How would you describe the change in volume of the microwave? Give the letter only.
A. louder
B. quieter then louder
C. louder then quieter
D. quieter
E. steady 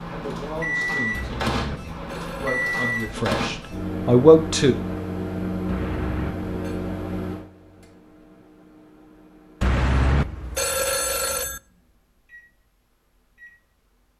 D.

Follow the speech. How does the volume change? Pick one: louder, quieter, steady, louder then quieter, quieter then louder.
quieter then louder.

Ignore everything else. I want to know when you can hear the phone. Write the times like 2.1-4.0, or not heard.
1.1-3.0, 5.7-6.8, 9.6-11.6.